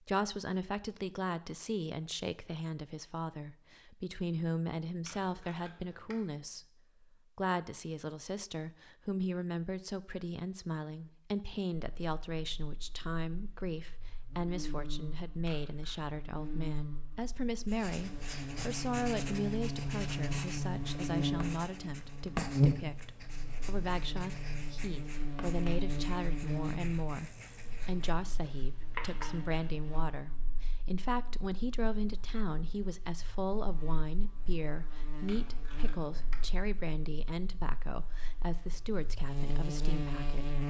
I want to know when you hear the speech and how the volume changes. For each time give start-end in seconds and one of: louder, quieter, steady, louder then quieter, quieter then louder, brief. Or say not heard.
0.0-40.6 steady.